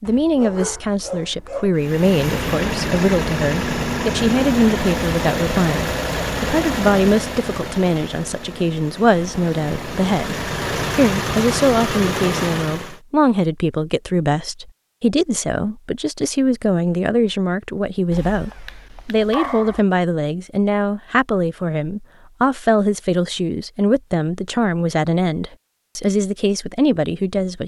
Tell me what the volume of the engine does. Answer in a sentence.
The volume of the engine goes down, then up.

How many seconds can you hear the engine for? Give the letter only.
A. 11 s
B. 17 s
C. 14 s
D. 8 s
A.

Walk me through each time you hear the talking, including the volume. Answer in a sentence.
The talking can be heard from 0.0 to 27.6 s, at a steady volume.